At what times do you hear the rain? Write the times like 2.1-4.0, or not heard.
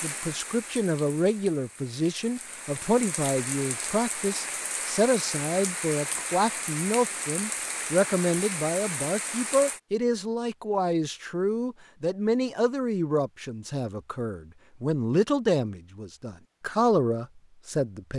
0.0-9.8.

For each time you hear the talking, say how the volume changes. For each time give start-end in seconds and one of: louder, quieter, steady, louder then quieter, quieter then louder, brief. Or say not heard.
0.0-18.1 steady.